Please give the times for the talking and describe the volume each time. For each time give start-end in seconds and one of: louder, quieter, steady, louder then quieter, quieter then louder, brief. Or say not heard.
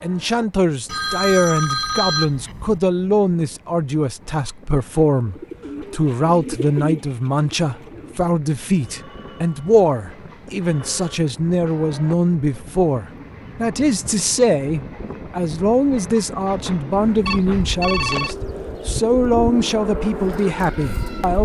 0.0-21.3 steady.